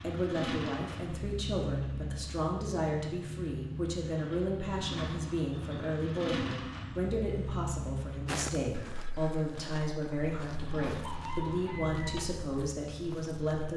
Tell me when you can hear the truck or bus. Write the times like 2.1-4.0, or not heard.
0.0-8.7, 10.2-13.7.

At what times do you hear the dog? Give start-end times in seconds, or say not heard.
not heard.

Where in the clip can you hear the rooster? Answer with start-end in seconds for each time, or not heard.
10.8-12.2.